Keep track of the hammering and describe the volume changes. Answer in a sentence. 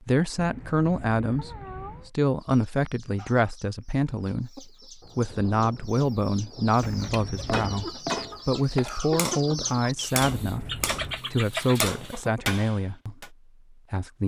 The volume of the hammering goes down, then up.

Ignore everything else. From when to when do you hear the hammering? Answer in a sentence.
The hammering can be heard from 6.8 to 13.3 s.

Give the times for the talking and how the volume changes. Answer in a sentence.
The talking can be heard from 0.1 to 14.2 s, at a steady volume.